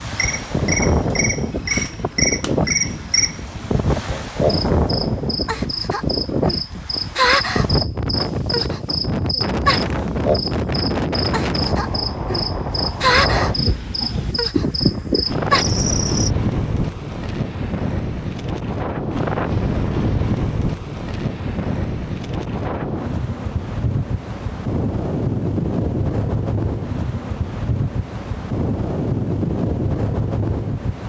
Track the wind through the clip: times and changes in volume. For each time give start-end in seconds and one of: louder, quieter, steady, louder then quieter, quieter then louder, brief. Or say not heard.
0.0-31.0 steady.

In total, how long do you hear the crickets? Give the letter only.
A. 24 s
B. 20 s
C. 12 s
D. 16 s
D.